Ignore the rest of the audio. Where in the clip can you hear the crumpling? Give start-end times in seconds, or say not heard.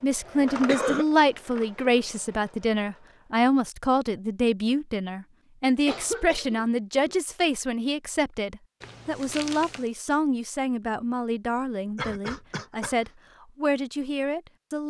8.8-9.9.